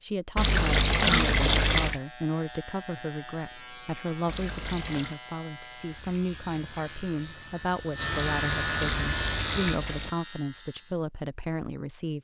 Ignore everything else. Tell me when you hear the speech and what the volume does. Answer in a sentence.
The speech can be heard from 0.0 to 12.1 s, at a steady volume.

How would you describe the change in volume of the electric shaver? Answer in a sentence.
The volume of the electric shaver goes up.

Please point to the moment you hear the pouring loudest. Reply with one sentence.
The loudest moment of the pouring is at 1 second.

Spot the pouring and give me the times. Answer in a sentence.
You can hear the pouring from 0.3 to 2.0 s, from 4.2 to 5.2 s and from 8.1 to 10.1 s.